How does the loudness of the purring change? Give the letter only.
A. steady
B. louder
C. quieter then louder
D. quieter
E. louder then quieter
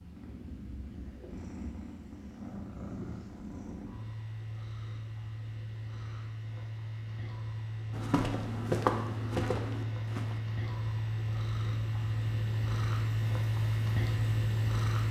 B.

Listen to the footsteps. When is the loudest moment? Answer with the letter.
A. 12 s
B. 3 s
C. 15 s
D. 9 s
D.